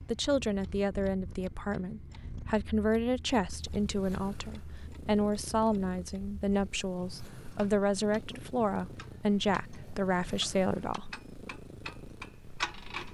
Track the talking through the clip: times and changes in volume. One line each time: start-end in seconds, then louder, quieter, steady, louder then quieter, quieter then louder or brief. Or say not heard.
0.1-11.1 steady.